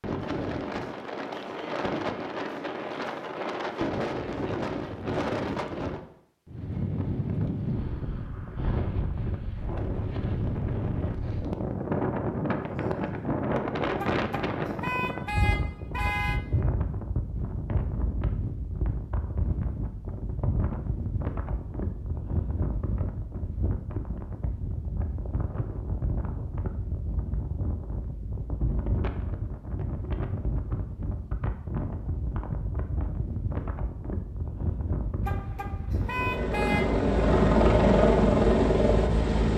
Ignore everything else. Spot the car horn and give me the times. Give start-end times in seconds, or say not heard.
13.9-16.4, 35.2-37.0.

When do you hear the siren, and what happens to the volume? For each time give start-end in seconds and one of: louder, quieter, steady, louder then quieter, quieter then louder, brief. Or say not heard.
not heard.